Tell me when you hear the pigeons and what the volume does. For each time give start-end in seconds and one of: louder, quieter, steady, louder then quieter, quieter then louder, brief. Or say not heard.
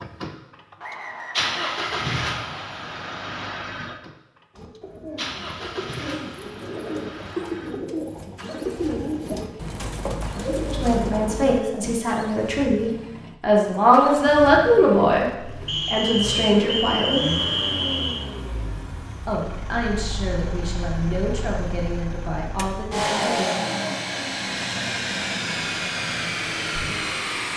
4.5-12.0 louder.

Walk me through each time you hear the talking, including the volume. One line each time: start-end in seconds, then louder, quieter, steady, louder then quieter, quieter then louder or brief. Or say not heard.
10.7-15.2 louder
15.8-17.2 brief
19.2-23.6 steady.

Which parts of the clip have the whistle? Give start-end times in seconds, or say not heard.
0.8-2.8, 15.7-18.2.